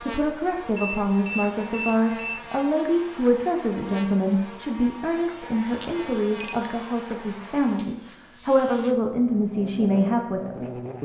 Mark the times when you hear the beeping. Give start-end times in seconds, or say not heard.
0.8-2.5, 5.7-6.9.